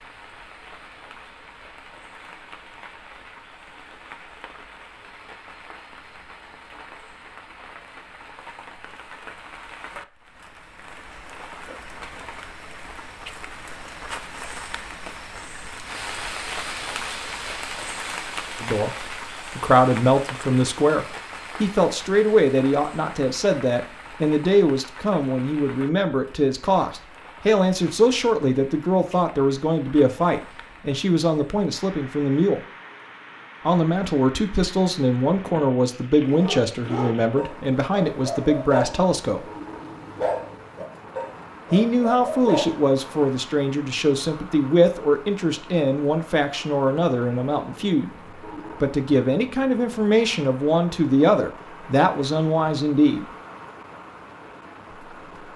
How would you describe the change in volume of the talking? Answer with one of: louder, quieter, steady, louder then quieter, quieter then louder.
steady.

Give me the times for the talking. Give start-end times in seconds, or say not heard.
18.6-32.6, 33.6-39.5, 41.7-53.2.